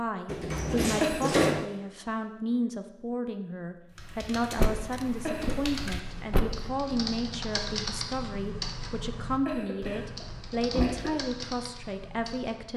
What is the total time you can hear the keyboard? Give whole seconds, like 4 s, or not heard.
9 s.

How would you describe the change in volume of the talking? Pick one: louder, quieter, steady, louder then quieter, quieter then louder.
steady.